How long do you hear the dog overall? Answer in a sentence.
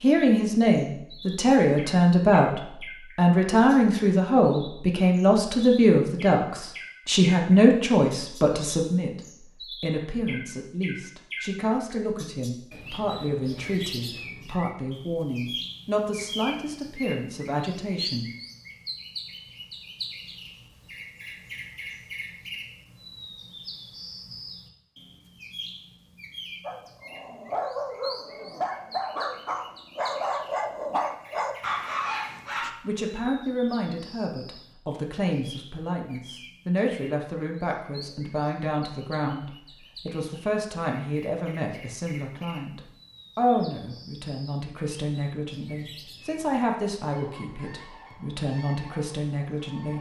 You can hear the dog for 6 seconds altogether.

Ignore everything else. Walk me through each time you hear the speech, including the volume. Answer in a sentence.
The speech can be heard from 0.0 to 18.2 s, getting quieter; and from 32.8 to 49.9 s, at a steady volume.